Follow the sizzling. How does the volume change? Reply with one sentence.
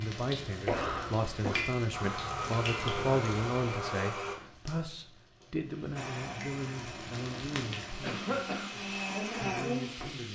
The volume of the sizzling goes down, then up.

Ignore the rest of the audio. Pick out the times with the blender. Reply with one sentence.
You can hear the blender from 1.9 to 4.3 s and from 6.0 to 10.1 s.